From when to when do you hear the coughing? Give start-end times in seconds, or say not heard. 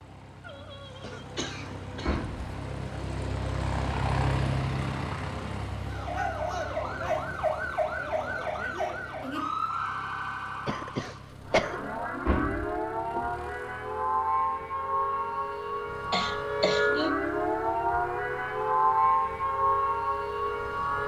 0.4-2.3, 10.7-11.8, 16.1-17.1.